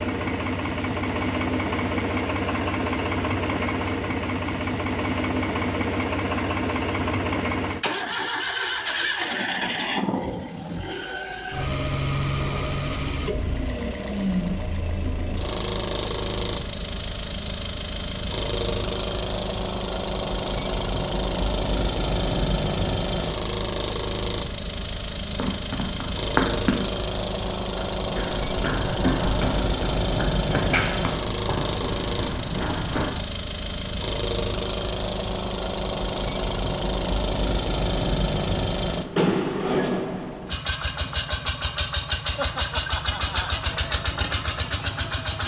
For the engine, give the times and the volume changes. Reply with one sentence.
The engine can be heard from 0.0 to 45.4 s, at a steady volume.